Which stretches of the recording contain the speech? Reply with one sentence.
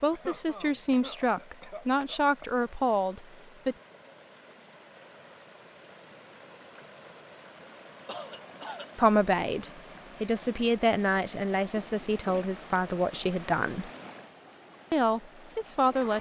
The speech can be heard from 0.0 to 3.8 s, from 8.9 to 13.9 s and from 14.9 to 16.1 s.